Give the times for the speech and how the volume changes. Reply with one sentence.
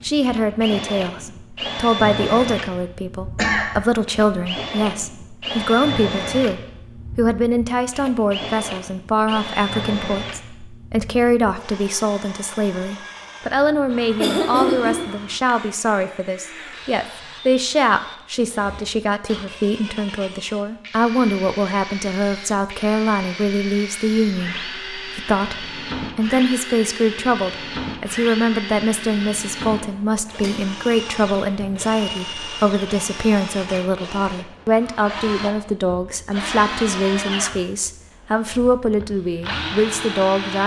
The speech can be heard from 0.0 to 40.6 s, at a steady volume.